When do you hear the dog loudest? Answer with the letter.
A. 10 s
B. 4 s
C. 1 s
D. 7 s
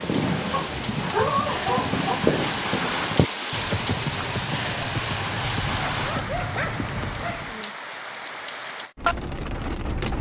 C.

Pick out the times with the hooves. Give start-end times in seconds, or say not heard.
0.0-7.5.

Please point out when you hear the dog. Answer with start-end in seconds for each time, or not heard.
0.5-2.2, 5.9-7.7.